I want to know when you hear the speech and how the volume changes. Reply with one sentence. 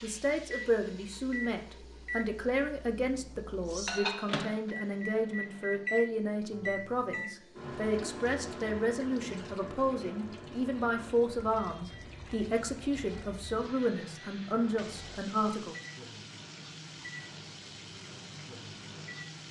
The speech can be heard from 0.0 to 15.8 s, at a steady volume.